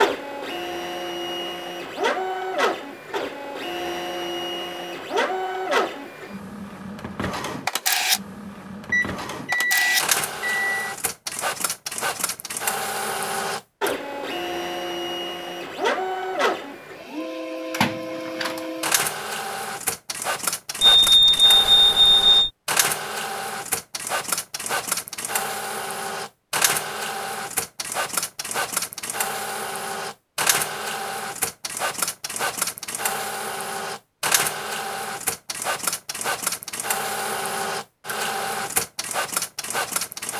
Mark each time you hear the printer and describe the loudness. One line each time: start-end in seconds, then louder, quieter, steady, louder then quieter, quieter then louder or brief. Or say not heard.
0.0-40.3 steady.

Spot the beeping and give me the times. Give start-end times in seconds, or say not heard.
8.9-10.9, 20.8-22.5.